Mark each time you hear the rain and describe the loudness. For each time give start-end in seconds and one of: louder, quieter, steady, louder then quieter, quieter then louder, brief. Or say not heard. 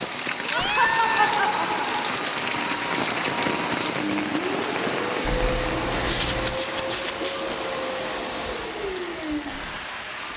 0.0-10.3 quieter.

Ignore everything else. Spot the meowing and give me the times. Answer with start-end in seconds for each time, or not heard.
0.3-1.3, 5.2-6.6.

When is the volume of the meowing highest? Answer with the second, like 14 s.
1 s.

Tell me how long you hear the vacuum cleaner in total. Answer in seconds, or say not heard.
10 s.